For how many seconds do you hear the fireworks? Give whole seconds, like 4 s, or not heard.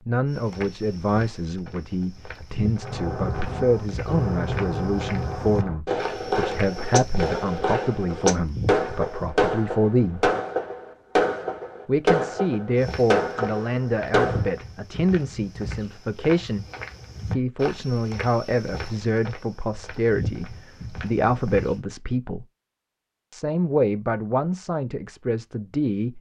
12 s.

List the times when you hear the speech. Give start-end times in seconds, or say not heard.
0.1-10.3, 11.8-16.6, 17.2-22.4, 23.3-26.1.